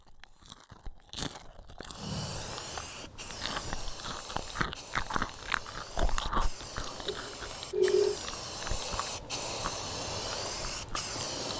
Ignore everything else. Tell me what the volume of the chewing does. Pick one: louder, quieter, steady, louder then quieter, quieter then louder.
louder then quieter.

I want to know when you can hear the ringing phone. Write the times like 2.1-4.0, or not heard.
7.0-8.2.